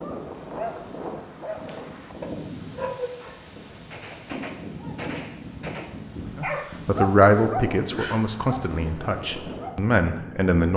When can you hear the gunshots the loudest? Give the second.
5 s.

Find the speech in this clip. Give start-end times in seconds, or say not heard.
6.3-10.7.